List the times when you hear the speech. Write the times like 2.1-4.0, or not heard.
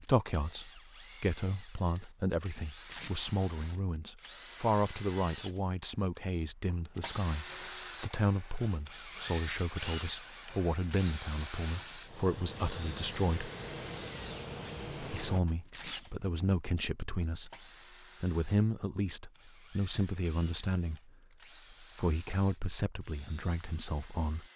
0.0-13.5, 15.0-17.5, 18.2-21.1, 21.7-24.4.